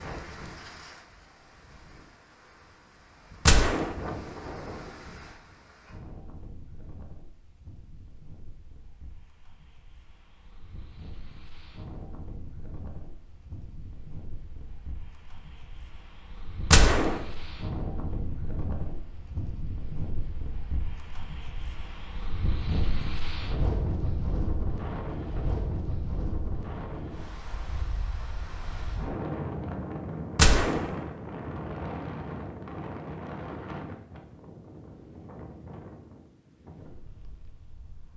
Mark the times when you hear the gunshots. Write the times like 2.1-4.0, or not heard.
3.5-3.9, 16.7-17.1, 30.4-30.9.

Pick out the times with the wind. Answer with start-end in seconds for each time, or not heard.
0.0-38.1.